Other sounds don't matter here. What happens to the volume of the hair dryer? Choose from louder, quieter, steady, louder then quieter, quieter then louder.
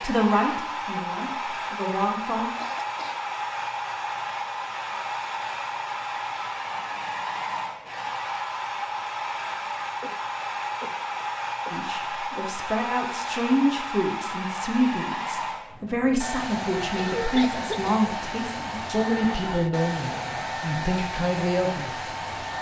steady.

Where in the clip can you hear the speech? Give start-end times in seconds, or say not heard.
0.0-2.5, 11.7-22.5.